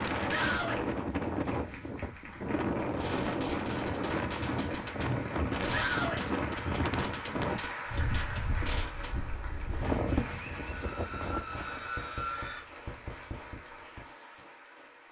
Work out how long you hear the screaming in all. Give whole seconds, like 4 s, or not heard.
3 s.